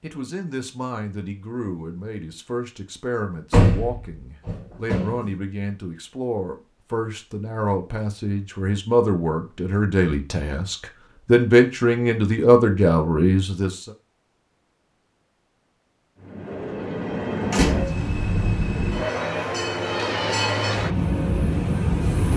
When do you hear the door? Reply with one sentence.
You can hear the door from 3.5 to 5.3 s and from 17.5 to 18.0 s.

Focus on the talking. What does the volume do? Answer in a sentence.
The volume of the talking goes up.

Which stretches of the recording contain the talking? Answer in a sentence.
The talking can be heard from 0.0 to 13.9 s.